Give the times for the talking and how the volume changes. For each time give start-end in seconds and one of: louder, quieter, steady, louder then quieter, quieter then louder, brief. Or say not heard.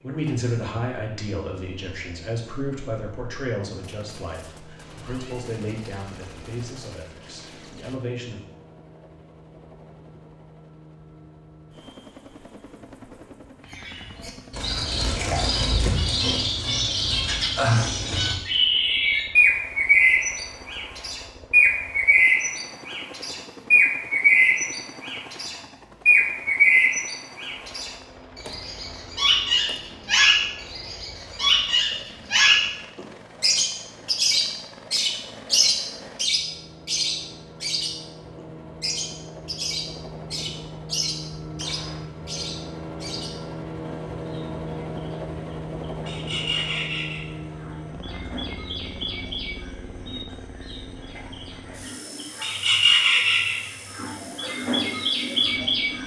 0.0-8.4 quieter.